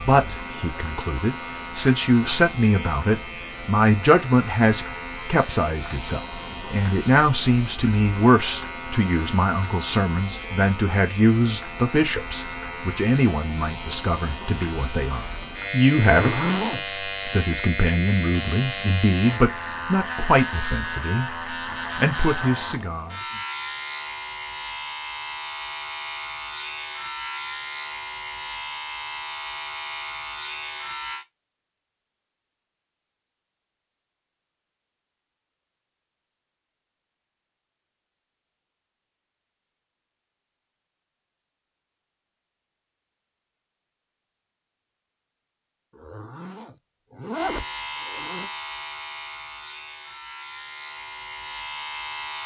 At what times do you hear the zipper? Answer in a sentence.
You can hear the zipper from 16.0 to 16.9 s and from 46.0 to 48.5 s.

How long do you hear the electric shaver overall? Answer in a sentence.
The electric shaver can be heard for 36 seconds in total.